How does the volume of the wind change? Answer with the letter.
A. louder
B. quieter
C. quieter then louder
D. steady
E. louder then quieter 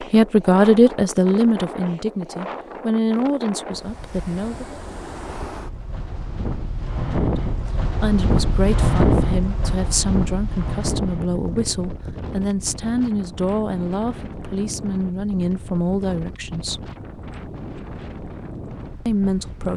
E.